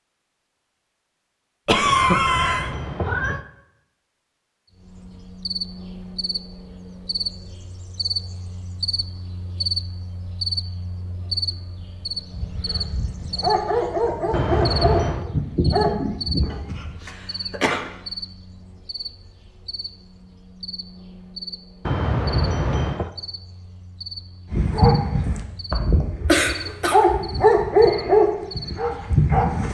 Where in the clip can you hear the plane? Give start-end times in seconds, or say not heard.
not heard.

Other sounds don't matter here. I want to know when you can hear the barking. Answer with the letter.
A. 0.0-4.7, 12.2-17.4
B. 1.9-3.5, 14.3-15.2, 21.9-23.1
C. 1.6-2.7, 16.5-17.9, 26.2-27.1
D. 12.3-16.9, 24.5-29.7
D.